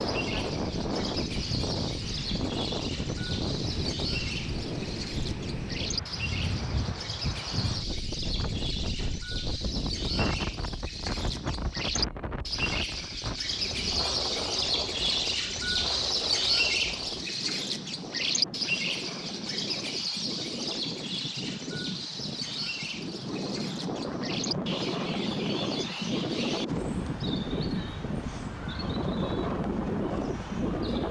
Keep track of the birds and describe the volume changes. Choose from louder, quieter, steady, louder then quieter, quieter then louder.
louder then quieter.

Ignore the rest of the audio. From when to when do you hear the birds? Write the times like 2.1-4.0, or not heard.
0.0-31.0.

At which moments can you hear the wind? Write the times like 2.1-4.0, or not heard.
0.0-31.0.